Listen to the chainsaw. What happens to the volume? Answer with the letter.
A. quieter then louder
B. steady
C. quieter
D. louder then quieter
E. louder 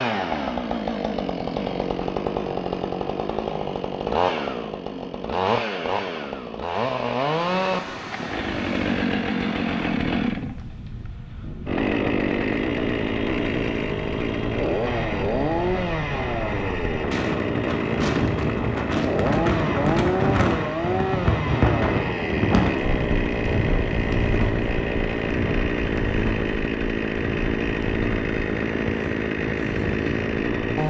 B.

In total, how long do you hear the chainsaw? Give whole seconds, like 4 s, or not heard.
31 s.